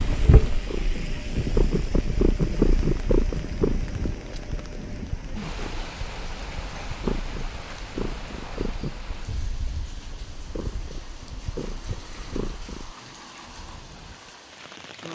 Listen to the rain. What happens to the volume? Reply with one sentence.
The volume of the rain goes down.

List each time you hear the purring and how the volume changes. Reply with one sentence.
You can hear the purring from 0.0 to 12.9 s, getting quieter.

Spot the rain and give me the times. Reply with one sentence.
You can hear the rain from 0.0 to 15.1 s.